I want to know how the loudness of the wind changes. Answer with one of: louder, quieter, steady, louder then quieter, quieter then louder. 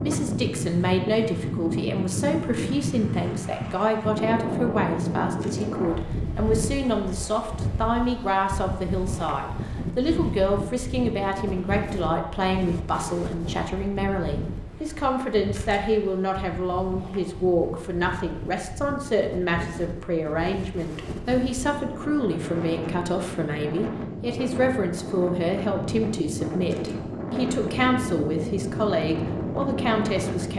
quieter then louder.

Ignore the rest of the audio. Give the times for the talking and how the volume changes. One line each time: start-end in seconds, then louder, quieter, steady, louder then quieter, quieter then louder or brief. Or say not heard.
0.0-30.5 steady.